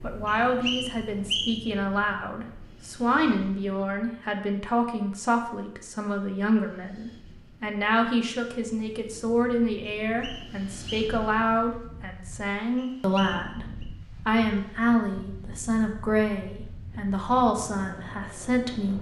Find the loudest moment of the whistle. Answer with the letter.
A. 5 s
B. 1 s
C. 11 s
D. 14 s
B.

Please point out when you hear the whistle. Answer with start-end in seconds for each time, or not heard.
0.2-1.7, 10.0-11.1, 12.8-13.8.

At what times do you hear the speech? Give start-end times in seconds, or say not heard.
0.0-18.9.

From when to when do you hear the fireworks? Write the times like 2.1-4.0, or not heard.
not heard.